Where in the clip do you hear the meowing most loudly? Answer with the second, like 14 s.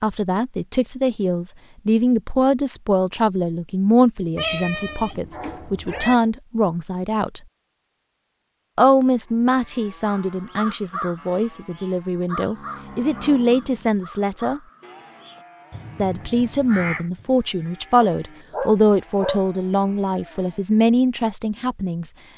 5 s.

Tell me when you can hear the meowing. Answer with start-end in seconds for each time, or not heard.
4.3-6.2.